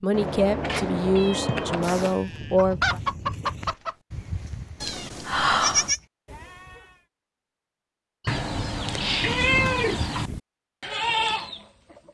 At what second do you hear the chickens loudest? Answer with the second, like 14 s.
3 s.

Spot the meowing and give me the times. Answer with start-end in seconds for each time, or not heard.
0.1-2.2, 4.8-5.9, 8.2-10.3.